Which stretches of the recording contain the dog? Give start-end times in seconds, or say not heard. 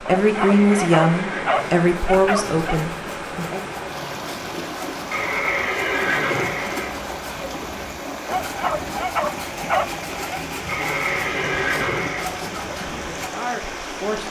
0.1-2.8, 8.2-10.4.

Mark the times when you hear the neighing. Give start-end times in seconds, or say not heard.
0.6-1.8, 5.1-6.9, 10.7-12.2.